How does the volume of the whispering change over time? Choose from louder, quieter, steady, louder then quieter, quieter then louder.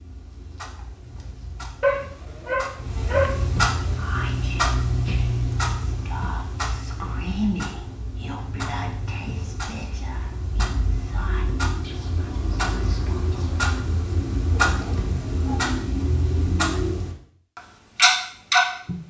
louder then quieter.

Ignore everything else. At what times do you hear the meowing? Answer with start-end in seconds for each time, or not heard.
not heard.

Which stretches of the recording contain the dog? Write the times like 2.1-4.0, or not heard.
1.8-3.5, 14.7-15.7.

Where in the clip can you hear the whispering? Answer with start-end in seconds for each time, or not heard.
3.9-13.7.